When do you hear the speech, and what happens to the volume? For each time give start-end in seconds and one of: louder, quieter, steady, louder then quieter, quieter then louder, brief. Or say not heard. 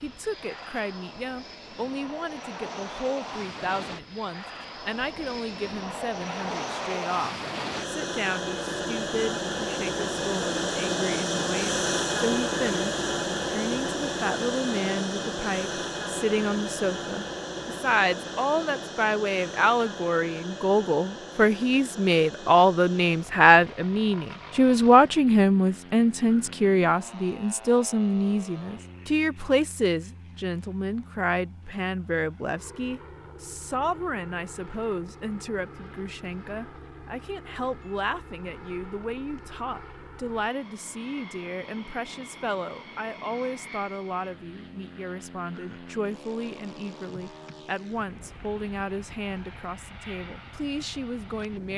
0.0-51.7 louder then quieter.